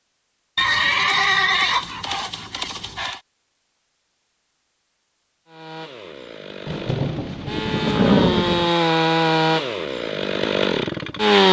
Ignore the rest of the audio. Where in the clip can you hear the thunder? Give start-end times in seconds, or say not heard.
6.7-8.6.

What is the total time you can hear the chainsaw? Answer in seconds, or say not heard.
6 s.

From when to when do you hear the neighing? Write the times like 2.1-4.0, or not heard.
0.6-3.2, 7.7-8.7.